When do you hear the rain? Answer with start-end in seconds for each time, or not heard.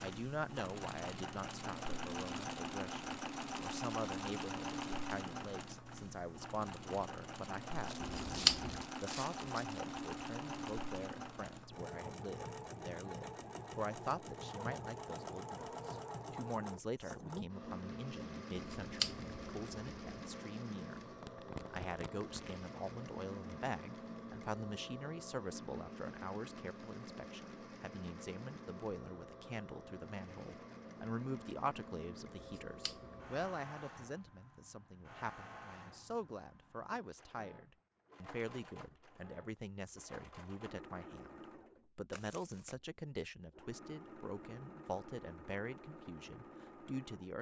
not heard.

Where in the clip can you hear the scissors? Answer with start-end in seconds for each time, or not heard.
8.0-8.8, 18.6-20.3, 32.4-33.5.